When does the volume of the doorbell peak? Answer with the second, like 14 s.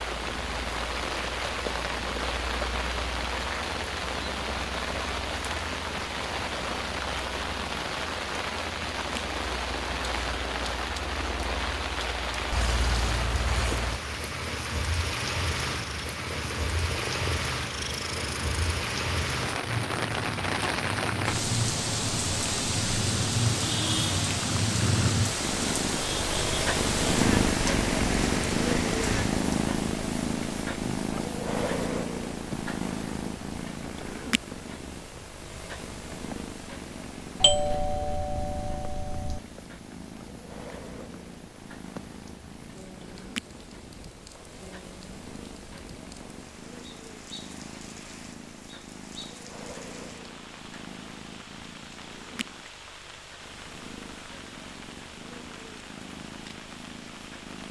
38 s.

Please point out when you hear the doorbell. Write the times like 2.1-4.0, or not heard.
37.4-39.4.